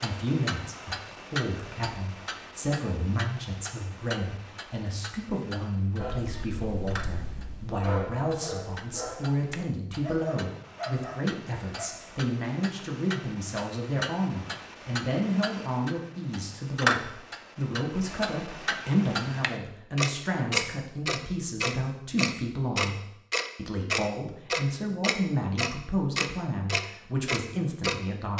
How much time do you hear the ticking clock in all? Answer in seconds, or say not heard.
28 s.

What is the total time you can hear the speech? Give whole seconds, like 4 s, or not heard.
28 s.